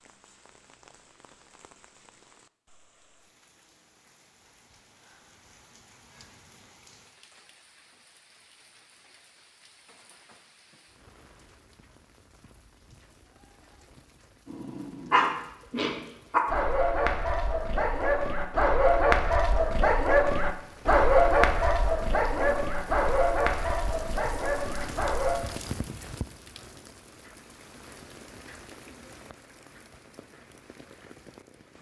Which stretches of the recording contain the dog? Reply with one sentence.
The dog can be heard from 14.4 to 25.4 s.